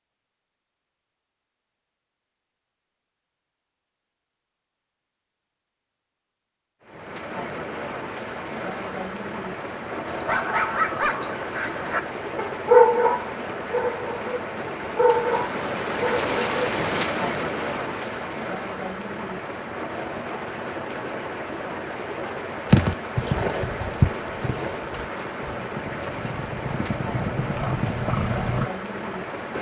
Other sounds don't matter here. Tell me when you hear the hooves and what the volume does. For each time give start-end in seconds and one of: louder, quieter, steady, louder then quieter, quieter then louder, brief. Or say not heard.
22.7-28.6 quieter then louder.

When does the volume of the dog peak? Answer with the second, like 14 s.
13 s.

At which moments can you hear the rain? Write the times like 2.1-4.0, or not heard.
6.8-29.5.